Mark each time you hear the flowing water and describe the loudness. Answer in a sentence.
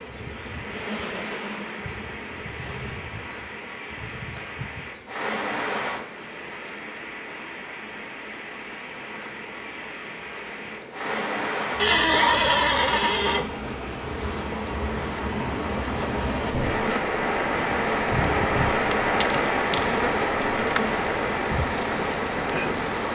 The flowing water can be heard from 0.0 to 23.1 s, getting louder.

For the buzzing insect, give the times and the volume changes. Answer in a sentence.
You can hear the buzzing insect from 0.0 to 23.1 s, getting quieter then louder.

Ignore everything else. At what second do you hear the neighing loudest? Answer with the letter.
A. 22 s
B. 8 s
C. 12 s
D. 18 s
C.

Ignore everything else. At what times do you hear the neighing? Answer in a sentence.
You can hear the neighing from 11.8 to 13.5 s.